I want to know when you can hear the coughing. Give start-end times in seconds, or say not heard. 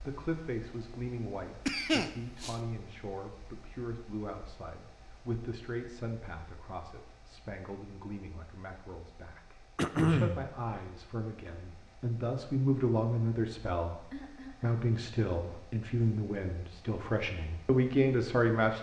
1.6-2.5, 9.8-10.4, 14.1-14.8.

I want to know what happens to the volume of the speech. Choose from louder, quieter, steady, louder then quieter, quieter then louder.
louder.